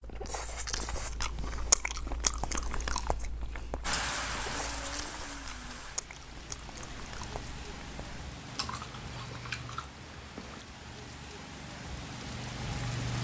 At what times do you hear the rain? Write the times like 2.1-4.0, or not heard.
3.8-13.1.